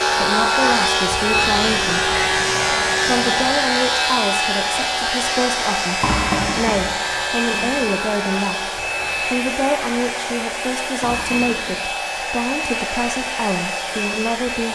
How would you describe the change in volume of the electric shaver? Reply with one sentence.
The loudness of the electric shaver goes down.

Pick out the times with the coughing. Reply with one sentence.
You can't hear the coughing here.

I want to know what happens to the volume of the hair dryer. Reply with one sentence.
The loudness of the hair dryer stays about the same.